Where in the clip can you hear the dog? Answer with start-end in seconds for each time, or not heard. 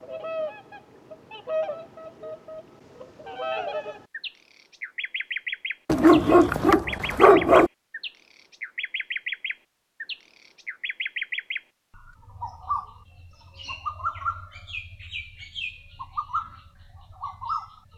5.8-7.7.